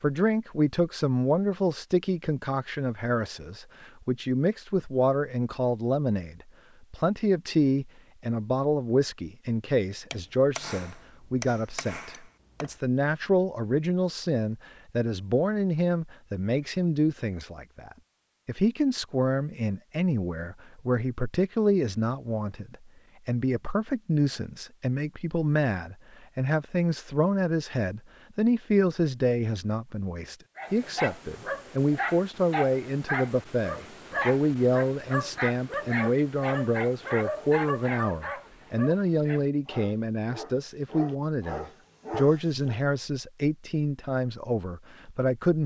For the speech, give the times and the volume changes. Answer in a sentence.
You can hear the speech from 0.0 to 45.6 s, at a steady volume.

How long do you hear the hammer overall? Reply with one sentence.
The hammer can be heard for 3 seconds in total.